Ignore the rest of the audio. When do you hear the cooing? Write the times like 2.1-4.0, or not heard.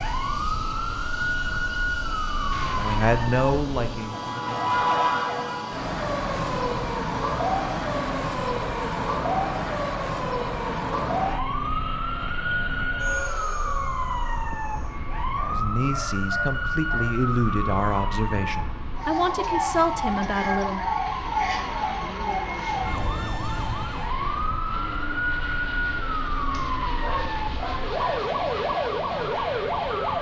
not heard.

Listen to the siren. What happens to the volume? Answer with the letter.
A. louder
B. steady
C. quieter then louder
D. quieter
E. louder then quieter
B.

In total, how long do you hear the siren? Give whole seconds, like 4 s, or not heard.
30 s.